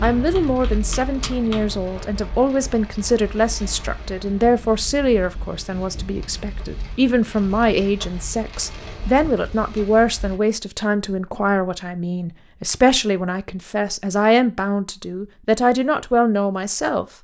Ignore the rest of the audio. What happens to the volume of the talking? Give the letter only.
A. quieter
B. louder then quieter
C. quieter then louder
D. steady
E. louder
D.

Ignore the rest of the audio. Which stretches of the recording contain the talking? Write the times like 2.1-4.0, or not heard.
0.0-17.1.